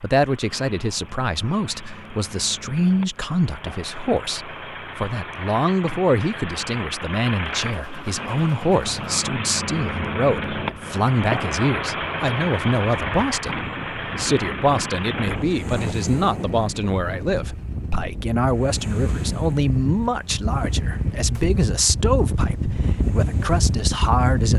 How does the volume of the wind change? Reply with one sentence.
The volume of the wind goes up.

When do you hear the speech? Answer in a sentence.
You can hear the speech from 0.0 to 24.5 s.